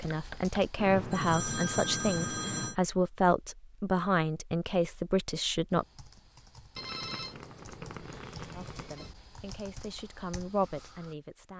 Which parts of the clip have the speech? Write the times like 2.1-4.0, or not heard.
0.0-5.8, 8.6-11.5.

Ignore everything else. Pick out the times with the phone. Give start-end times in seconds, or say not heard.
0.8-2.8, 6.8-9.1.